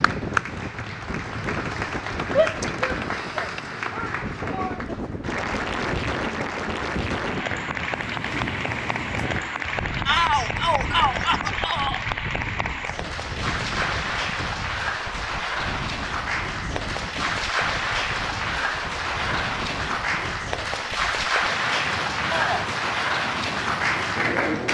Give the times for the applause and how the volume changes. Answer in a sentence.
You can hear the applause from 0.0 to 24.6 s, getting louder.